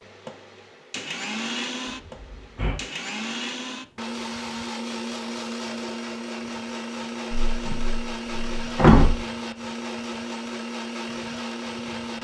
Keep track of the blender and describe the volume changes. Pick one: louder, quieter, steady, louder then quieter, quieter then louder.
steady.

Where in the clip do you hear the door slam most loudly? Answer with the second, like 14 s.
9 s.